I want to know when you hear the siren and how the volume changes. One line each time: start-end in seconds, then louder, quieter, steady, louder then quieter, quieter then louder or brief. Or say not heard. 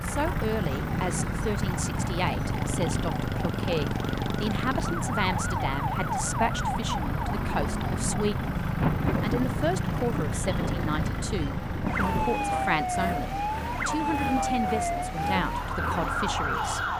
0.0-16.9 steady.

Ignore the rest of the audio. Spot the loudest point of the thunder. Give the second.
9 s.